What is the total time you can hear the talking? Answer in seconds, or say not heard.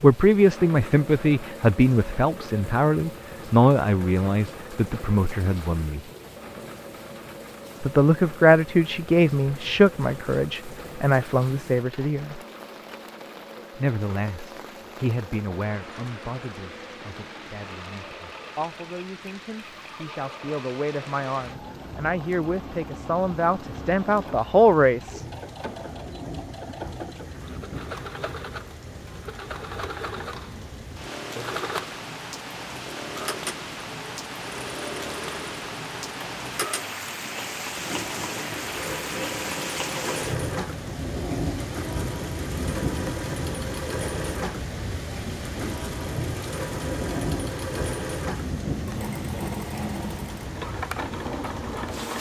22 s.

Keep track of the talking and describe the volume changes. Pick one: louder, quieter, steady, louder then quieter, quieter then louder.
quieter then louder.